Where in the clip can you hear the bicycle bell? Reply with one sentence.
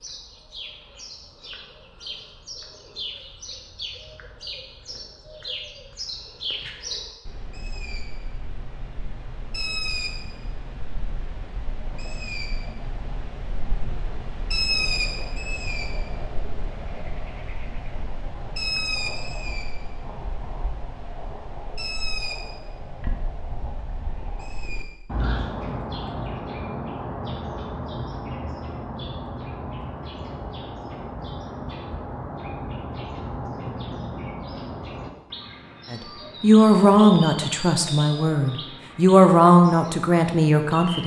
The bicycle bell can't be heard in this clip.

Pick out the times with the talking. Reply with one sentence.
You can hear the talking from 35.9 to 41.0 s.